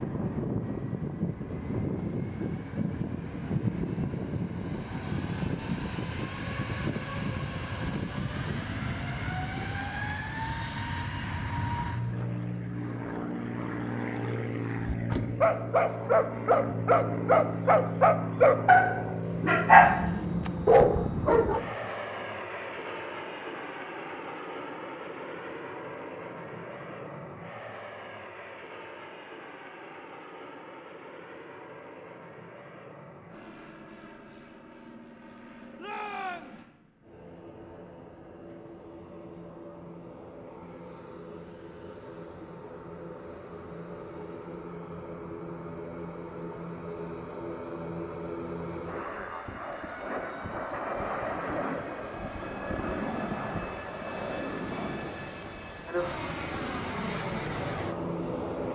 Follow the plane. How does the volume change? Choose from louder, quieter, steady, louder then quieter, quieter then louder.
quieter then louder.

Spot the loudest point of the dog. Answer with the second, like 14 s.
20 s.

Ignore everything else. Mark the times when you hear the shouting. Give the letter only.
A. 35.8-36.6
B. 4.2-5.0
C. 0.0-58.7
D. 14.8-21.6
A.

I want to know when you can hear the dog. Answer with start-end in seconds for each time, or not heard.
14.8-21.6.